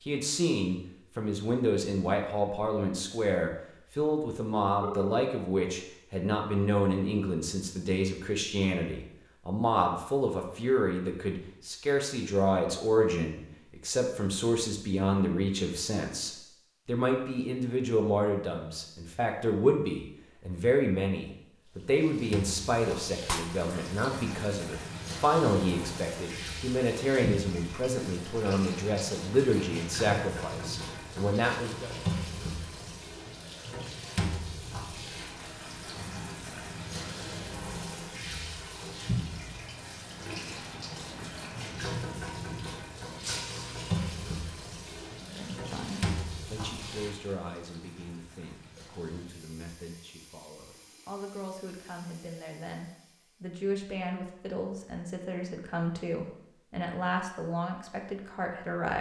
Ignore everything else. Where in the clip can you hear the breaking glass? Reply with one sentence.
The breaking glass can be heard from 23.2 to 23.8 s and from 43.2 to 43.9 s.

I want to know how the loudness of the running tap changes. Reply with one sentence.
The loudness of the running tap goes down.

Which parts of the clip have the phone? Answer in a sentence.
The phone can be heard from 4.8 to 5.2 s.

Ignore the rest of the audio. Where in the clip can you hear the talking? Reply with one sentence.
The talking can be heard from 0.1 to 31.9 s and from 45.2 to 58.9 s.